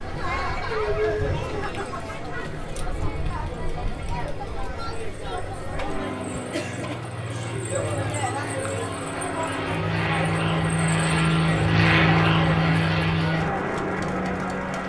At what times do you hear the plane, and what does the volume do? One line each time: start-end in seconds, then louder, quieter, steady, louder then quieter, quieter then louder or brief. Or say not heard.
0.0-14.8 louder.